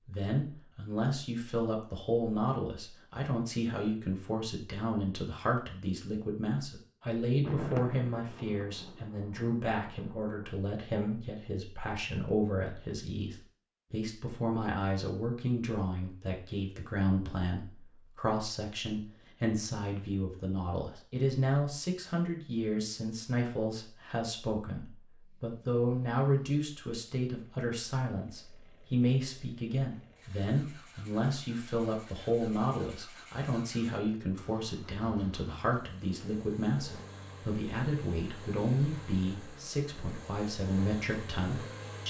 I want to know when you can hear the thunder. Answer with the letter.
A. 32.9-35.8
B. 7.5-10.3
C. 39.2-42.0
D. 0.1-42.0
B.